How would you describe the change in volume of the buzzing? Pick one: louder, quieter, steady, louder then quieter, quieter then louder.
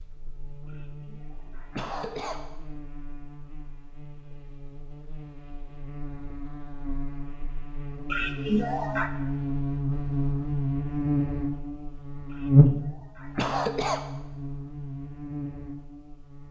louder then quieter.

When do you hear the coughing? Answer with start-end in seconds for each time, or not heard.
0.7-2.4, 8.1-9.1, 12.3-14.1.